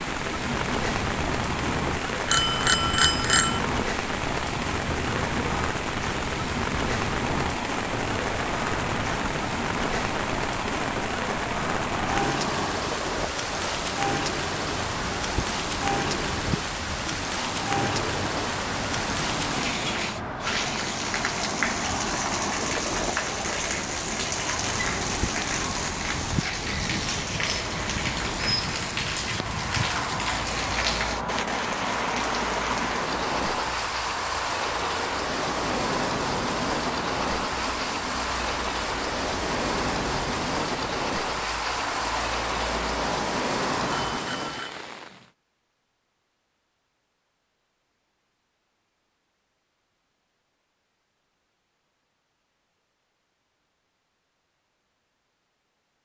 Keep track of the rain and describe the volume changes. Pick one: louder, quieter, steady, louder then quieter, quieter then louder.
steady.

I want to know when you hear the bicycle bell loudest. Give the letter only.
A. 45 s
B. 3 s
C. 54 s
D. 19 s
B.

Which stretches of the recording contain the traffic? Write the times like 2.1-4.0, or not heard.
0.0-44.2.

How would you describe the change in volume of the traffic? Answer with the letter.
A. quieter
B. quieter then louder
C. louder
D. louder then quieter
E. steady
E.